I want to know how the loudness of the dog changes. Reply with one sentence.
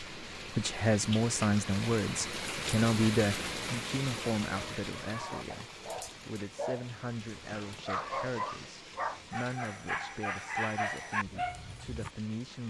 The loudness of the dog goes up.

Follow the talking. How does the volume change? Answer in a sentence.
The loudness of the talking goes down.